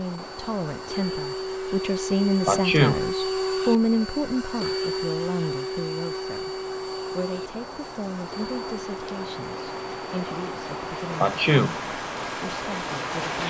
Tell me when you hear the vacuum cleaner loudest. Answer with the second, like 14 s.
3 s.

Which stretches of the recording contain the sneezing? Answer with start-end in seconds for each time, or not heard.
2.5-3.0, 11.2-11.8.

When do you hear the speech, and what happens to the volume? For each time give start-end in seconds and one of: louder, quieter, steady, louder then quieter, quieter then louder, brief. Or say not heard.
0.0-13.4 quieter.